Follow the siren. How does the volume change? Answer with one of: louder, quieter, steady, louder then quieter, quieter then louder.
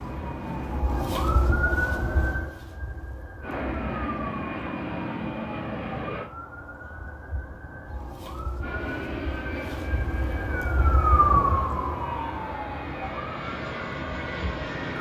quieter then louder.